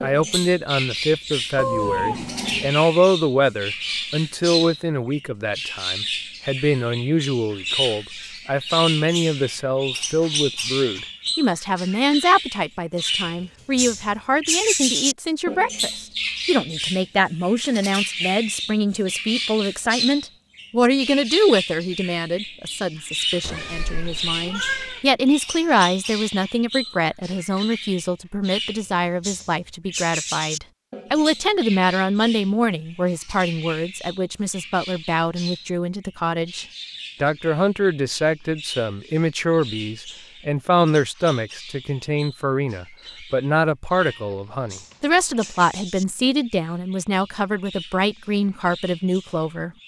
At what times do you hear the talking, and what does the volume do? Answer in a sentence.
You can hear the talking from 0.0 to 49.7 s, at a steady volume.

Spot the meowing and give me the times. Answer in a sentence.
The meowing can be heard from 1.6 to 2.8 s, from 23.4 to 25.1 s and from 44.0 to 45.6 s.